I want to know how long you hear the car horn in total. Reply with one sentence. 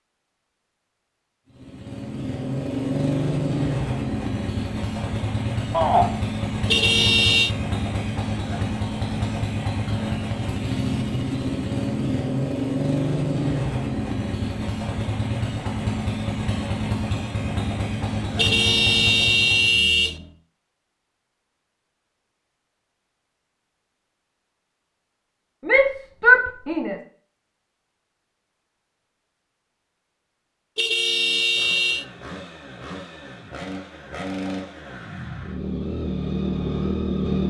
You can hear the car horn for 4 seconds altogether.